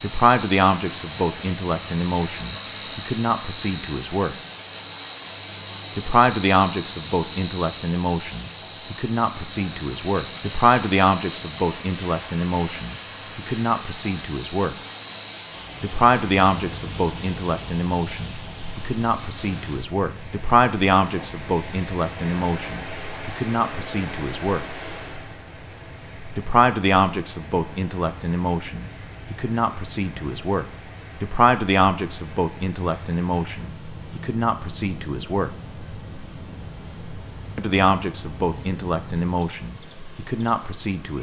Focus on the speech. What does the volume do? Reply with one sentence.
The loudness of the speech stays about the same.